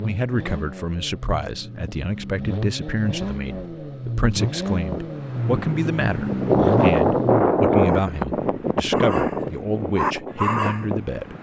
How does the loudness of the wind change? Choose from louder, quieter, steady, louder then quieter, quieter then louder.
louder then quieter.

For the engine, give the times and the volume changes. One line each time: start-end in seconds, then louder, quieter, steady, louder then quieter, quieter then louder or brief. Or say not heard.
0.0-7.8 louder.